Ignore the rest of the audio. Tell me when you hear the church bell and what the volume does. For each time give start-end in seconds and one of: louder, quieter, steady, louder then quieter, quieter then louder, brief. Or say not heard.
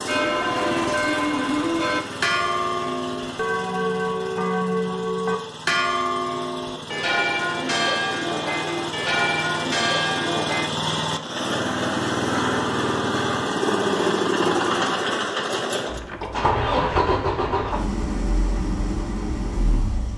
0.1-10.7 steady.